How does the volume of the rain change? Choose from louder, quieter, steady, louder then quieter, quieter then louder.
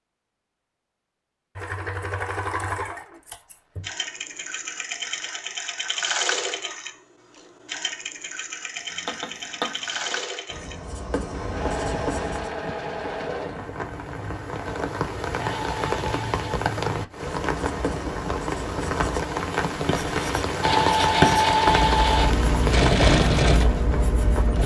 louder.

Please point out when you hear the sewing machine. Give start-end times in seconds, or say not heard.
1.6-16.6, 20.6-24.6.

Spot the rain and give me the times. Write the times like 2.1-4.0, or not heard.
11.3-24.6.